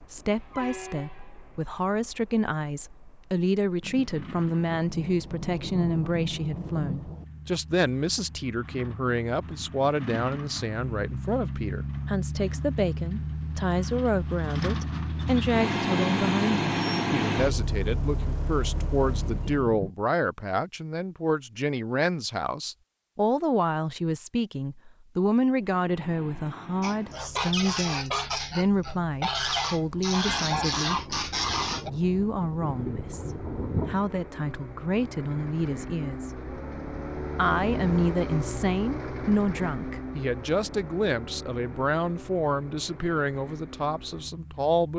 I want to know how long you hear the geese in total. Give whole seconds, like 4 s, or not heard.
5 s.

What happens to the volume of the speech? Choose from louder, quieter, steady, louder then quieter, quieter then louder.
steady.